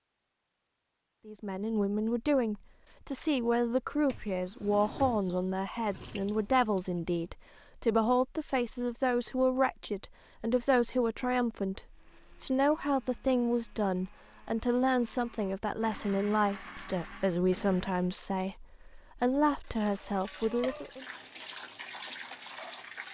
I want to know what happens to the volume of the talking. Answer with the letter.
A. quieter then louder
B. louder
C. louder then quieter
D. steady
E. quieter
D.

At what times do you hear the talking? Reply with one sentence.
The talking can be heard from 1.2 to 21.1 s.